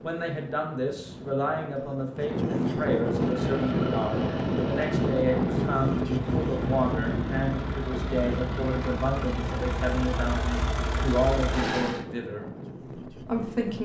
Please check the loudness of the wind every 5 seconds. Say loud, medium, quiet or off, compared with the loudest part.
loud, loud, medium.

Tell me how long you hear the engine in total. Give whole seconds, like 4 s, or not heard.
9 s.